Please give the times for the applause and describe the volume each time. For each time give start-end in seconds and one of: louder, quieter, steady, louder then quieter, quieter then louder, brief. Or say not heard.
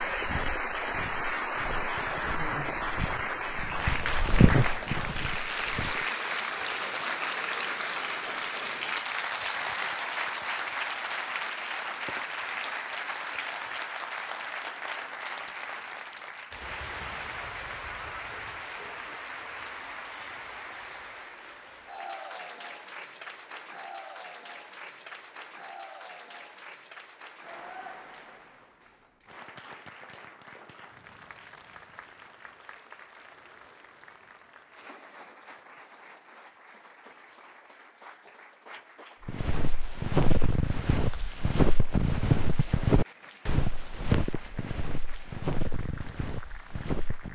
0.0-47.3 quieter.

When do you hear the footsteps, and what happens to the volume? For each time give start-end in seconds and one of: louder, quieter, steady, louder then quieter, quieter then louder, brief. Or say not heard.
0.0-6.0 louder then quieter
39.2-47.3 quieter.